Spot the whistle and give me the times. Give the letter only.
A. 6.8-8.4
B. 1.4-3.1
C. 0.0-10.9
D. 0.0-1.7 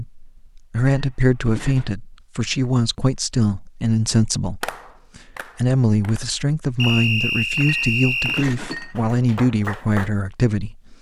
A.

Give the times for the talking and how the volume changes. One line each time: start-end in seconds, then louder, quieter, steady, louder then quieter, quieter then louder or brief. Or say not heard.
0.0-10.9 steady.